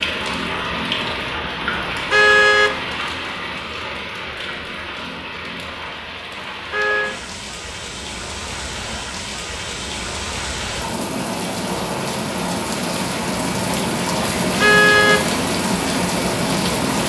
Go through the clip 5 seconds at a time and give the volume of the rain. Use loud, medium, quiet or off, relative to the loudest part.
medium, medium, loud, loud.